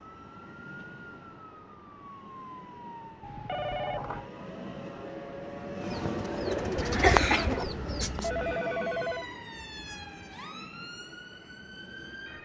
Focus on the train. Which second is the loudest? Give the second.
6 s.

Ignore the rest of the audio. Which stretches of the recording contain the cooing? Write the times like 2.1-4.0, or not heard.
5.8-8.3.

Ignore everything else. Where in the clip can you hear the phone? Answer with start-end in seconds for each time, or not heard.
3.2-4.3, 8.2-9.2.